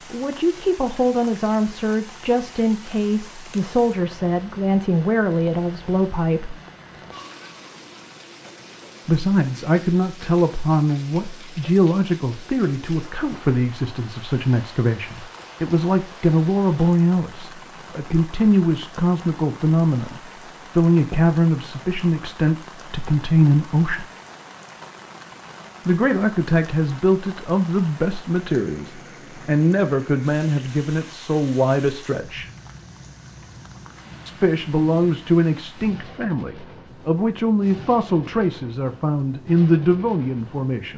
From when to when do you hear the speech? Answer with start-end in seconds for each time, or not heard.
0.1-6.5, 9.1-24.1, 25.9-32.5, 34.2-40.9.